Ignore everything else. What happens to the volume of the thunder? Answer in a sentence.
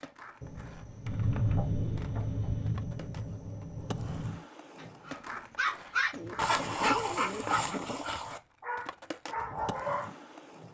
The loudness of the thunder goes down.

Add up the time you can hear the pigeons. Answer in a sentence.
You can hear the pigeons for 4 seconds altogether.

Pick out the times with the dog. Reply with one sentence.
You can hear the dog from 4.8 to 10.1 s.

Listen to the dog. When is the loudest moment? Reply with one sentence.
The volume of the dog peaks at 7 seconds.